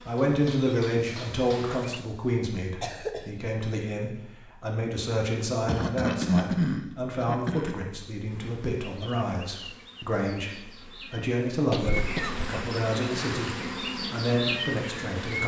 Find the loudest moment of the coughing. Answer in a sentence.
The loudest moment of the coughing is at 6 seconds.